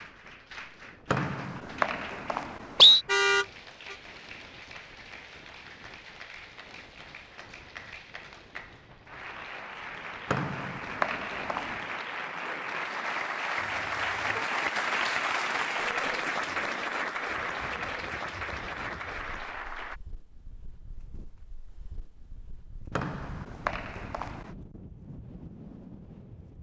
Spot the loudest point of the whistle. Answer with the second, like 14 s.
3 s.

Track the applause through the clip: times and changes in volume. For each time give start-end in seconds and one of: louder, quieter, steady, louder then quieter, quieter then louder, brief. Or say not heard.
0.0-20.0 louder.